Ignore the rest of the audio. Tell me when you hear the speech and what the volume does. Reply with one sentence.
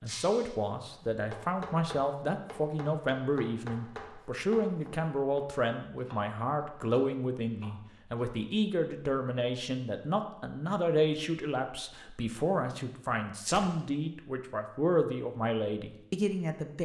You can hear the speech from 0.0 to 16.8 s, at a steady volume.